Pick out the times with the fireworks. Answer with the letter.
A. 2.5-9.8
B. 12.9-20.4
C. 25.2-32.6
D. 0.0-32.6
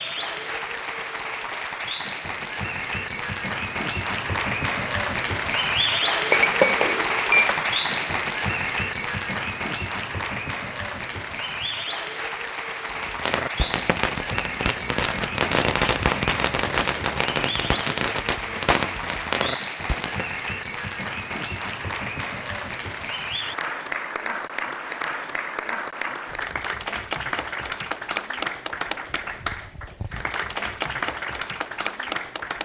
B.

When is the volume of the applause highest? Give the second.
6 s.